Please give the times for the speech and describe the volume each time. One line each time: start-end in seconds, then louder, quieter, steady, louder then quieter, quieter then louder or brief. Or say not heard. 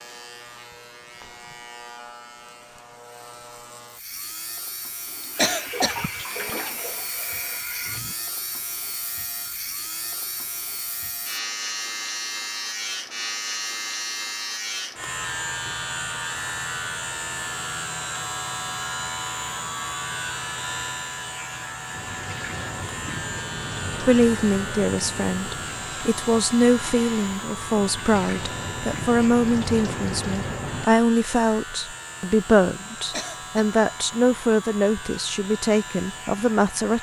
24.0-36.9 steady.